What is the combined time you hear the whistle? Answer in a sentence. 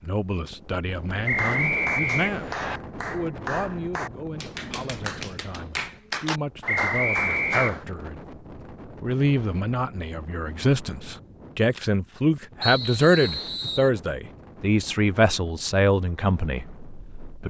The whistle can be heard for 4 seconds in total.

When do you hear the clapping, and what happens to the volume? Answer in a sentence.
The clapping can be heard from 1.1 to 7.8 s, at a steady volume.